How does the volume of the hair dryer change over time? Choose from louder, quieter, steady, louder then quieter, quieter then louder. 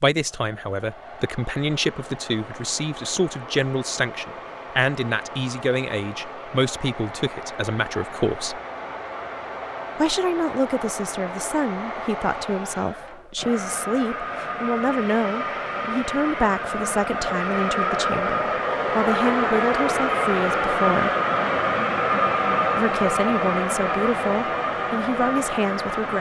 louder.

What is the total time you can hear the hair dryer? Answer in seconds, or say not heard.
26 s.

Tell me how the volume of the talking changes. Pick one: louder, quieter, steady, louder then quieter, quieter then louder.
steady.